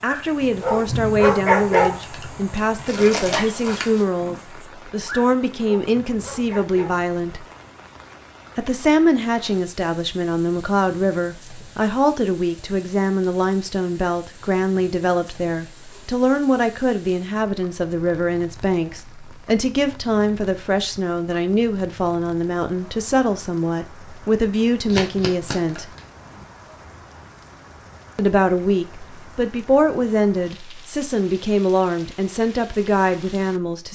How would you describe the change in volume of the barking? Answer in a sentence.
The loudness of the barking goes down.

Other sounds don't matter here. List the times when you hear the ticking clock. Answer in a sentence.
The ticking clock can't be heard in this clip.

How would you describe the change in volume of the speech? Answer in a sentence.
The volume of the speech stays about the same.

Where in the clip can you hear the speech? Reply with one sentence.
You can hear the speech from 0.0 to 7.5 s, from 8.6 to 25.9 s and from 28.1 to 33.9 s.